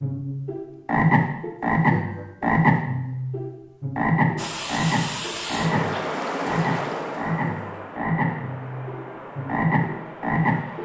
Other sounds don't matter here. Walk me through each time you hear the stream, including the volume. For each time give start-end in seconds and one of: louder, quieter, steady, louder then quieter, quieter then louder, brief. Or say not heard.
4.3-10.8 quieter.